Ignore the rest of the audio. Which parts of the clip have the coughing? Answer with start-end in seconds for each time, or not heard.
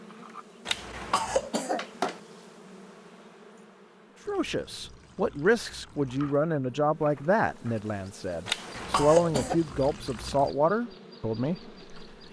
0.7-2.2, 8.4-9.6.